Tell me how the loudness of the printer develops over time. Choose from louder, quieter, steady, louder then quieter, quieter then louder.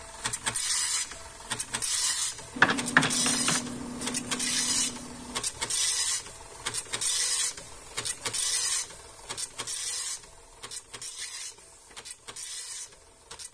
quieter.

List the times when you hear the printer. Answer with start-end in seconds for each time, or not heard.
0.0-13.5.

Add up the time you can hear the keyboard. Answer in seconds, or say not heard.
3 s.